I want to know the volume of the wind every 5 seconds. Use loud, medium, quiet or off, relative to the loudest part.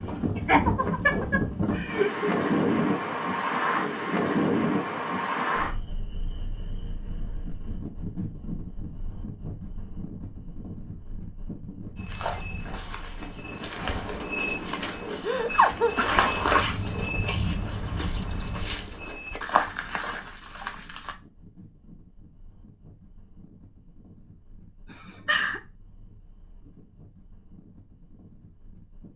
loud, medium, quiet, quiet, quiet, quiet.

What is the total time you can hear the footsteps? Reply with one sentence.
You can hear the footsteps for 9 seconds altogether.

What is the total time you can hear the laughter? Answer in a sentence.
The laughter can be heard for 3 seconds in total.